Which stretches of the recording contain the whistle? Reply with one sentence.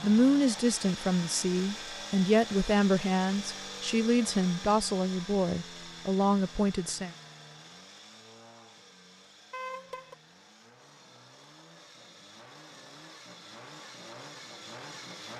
You can't hear the whistle here.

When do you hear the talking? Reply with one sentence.
You can hear the talking from 0.0 to 7.1 s.